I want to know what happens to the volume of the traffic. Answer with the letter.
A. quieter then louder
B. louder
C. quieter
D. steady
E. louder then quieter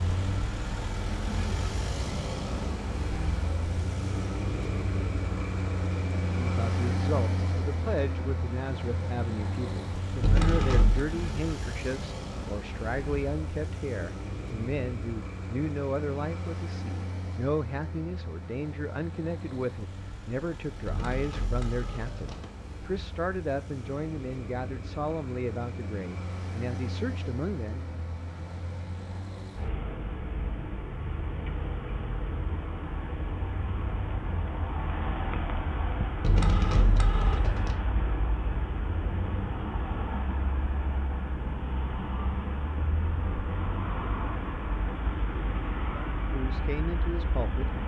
A.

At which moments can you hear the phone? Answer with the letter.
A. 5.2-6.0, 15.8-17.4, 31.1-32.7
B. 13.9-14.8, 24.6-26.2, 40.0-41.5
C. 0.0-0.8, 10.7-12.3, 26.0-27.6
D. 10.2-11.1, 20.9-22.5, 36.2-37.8
D.